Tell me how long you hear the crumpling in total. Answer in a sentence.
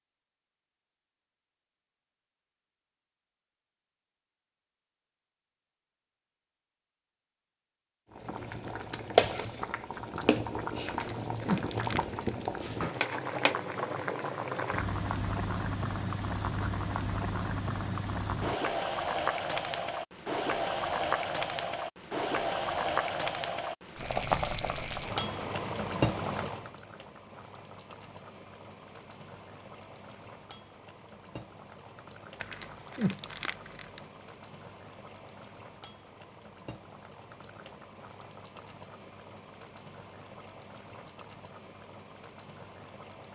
The crumpling can be heard for 3 seconds in total.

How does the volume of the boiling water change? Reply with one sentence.
The volume of the boiling water goes down.